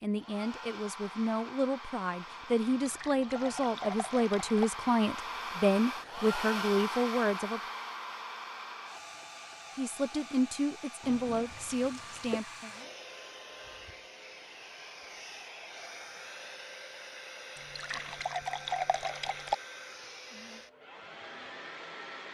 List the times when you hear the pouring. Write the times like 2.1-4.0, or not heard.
2.6-4.7, 11.0-12.4, 17.6-19.6.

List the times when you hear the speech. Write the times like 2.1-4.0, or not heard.
0.0-7.6, 9.8-12.7.